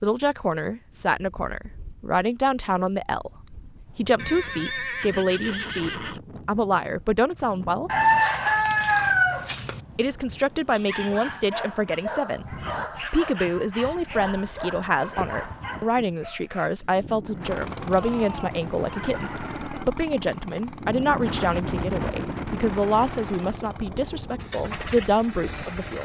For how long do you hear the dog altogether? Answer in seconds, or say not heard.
6 s.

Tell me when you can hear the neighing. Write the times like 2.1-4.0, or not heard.
4.2-6.2, 17.9-19.9.